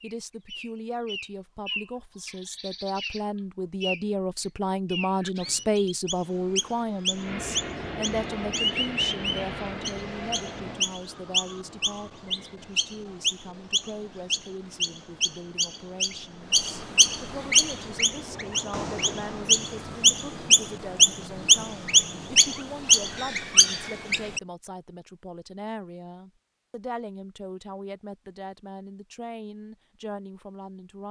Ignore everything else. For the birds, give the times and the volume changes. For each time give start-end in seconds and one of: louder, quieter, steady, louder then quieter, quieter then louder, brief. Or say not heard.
0.0-24.4 louder.